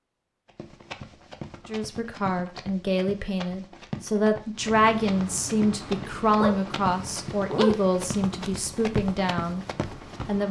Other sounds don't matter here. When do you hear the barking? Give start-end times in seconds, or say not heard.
6.4-7.8.